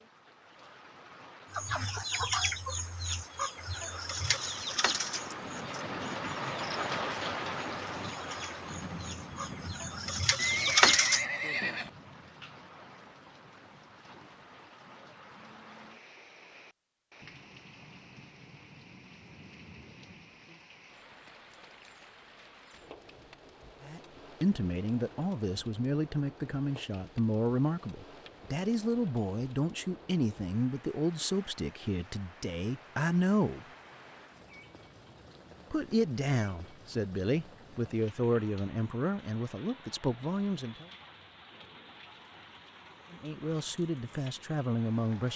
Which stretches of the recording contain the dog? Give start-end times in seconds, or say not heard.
not heard.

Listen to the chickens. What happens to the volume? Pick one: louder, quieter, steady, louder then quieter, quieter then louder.
quieter then louder.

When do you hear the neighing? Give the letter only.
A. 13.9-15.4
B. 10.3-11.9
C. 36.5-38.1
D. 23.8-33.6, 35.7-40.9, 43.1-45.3
B.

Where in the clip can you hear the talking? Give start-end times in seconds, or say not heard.
23.8-33.6, 35.7-40.9, 43.1-45.3.